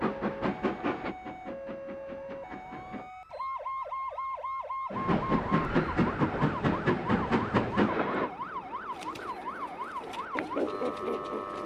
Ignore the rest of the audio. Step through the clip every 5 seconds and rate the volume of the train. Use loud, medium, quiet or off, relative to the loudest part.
medium, loud, quiet.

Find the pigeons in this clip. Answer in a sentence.
You can hear the pigeons from 8.9 to 11.6 s.